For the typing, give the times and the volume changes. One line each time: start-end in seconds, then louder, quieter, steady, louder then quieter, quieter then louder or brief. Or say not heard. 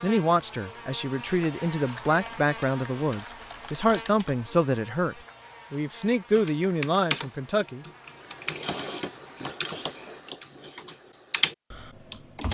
1.9-4.5 brief
6.3-12.4 quieter then louder.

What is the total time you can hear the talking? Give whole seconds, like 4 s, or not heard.
8 s.